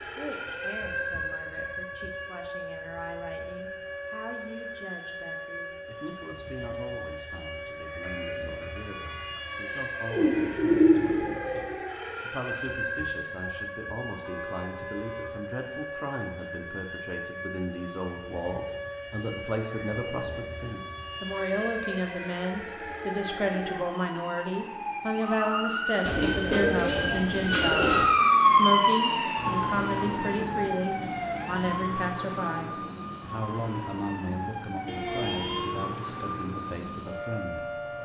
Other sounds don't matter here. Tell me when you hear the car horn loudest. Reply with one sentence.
The volume of the car horn peaks at 35 seconds.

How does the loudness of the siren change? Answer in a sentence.
The volume of the siren goes up, then down.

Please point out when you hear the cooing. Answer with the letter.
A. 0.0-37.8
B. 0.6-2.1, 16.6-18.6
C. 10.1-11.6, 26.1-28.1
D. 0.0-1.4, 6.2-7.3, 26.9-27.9
C.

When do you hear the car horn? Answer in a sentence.
You can hear the car horn from 8.0 to 9.4 s, from 14.2 to 15.3 s and from 34.9 to 35.9 s.